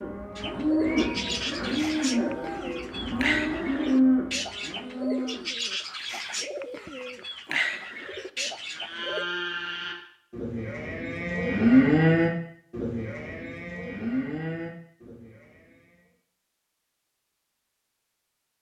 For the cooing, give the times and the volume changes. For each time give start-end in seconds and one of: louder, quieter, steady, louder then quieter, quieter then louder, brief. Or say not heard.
0.3-9.2 steady.